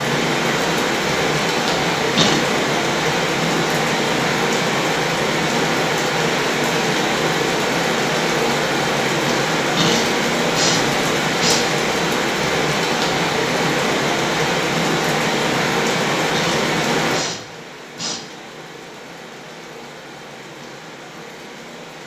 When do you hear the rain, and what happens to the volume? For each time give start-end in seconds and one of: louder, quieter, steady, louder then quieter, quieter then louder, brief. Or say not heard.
0.0-22.0 quieter.